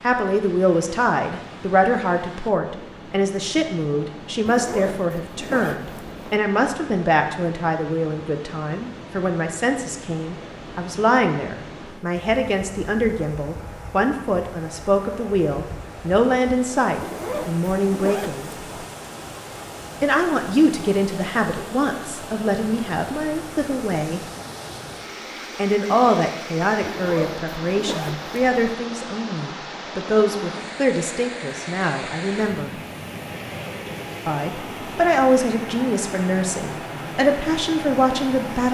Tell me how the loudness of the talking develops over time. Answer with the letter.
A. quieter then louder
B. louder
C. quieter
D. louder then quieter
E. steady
E.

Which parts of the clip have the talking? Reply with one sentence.
You can hear the talking from 0.0 to 18.5 s, from 20.0 to 24.2 s, from 25.6 to 32.7 s and from 34.2 to 38.6 s.